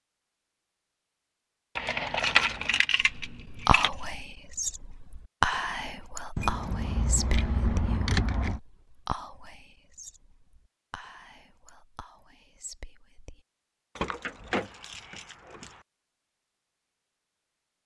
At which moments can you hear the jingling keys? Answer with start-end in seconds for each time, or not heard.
1.8-4.2, 6.3-8.6, 13.9-15.8.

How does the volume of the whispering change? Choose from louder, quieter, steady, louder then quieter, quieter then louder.
quieter.